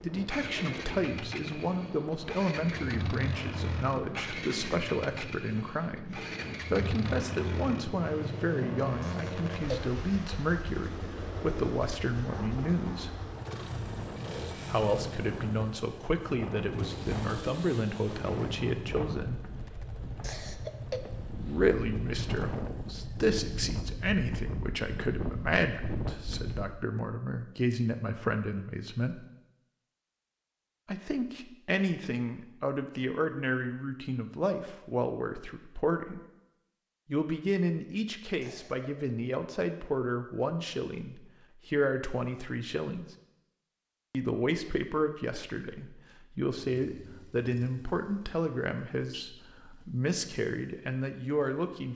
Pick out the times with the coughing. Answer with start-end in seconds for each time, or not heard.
9.0-9.8, 20.2-21.0, 38.4-38.9.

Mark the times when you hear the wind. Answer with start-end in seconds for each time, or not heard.
0.0-26.8.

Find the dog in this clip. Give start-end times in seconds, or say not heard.
not heard.